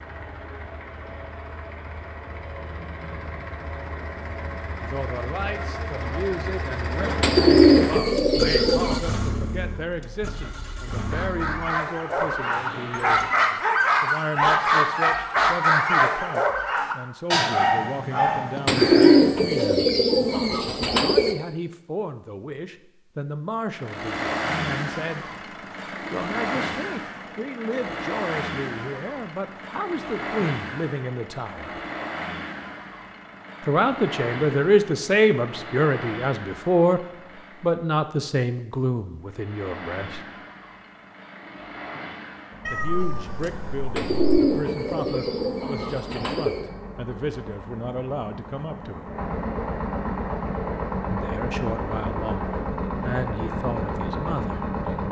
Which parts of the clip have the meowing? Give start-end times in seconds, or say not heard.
42.6-44.4.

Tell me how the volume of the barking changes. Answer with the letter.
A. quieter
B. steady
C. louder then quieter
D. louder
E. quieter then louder
C.